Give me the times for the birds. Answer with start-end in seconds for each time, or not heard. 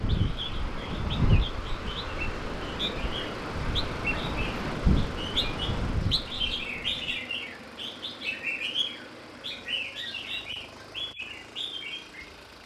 0.1-12.3.